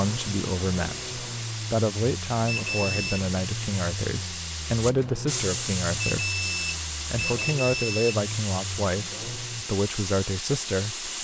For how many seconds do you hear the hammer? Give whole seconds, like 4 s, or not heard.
not heard.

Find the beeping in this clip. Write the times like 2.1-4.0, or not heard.
2.5-3.2, 6.0-8.2.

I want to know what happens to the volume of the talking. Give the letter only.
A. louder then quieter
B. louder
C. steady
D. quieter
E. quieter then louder
C.